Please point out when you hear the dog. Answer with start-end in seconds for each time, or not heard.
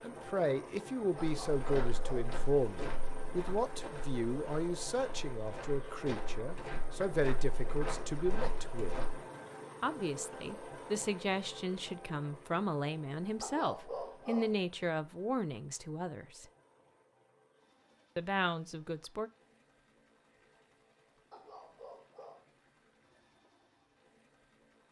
1.2-2.4, 13.4-14.6, 21.3-22.6.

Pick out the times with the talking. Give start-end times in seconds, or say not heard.
0.0-8.9, 9.8-16.4, 18.1-19.3.